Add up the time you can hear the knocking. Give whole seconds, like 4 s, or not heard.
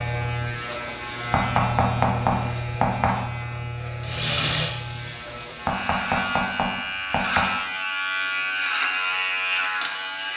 4 s.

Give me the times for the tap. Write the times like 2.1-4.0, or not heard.
4.0-6.7.